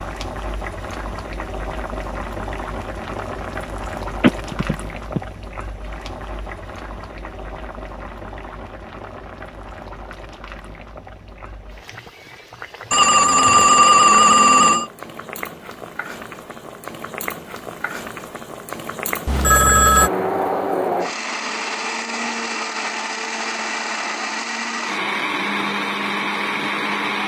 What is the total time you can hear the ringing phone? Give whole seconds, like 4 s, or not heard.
4 s.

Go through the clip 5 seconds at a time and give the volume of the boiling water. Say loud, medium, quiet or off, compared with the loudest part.
loud, medium, medium, loud, off, off.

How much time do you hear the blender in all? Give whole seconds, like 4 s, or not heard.
7 s.